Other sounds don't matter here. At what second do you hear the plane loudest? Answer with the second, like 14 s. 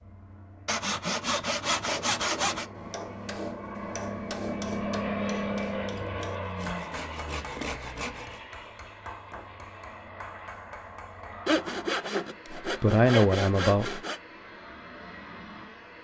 5 s.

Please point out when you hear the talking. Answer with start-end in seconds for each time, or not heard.
12.7-14.0.